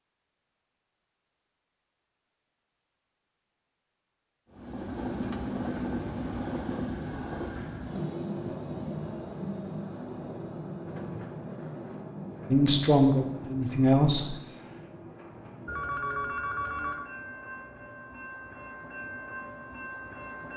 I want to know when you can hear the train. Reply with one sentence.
The train can be heard from 4.5 to 20.5 s.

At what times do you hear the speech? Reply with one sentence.
The speech can be heard from 12.5 to 14.3 s.